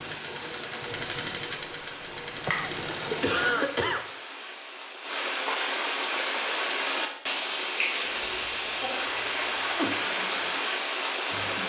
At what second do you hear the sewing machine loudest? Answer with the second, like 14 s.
3 s.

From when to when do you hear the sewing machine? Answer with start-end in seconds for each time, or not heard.
0.0-3.9, 9.9-11.6.